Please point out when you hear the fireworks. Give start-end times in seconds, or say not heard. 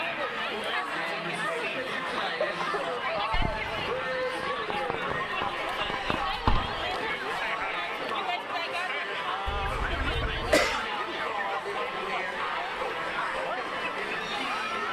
3.1-7.0.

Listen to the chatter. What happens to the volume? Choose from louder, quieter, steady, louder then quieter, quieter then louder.
steady.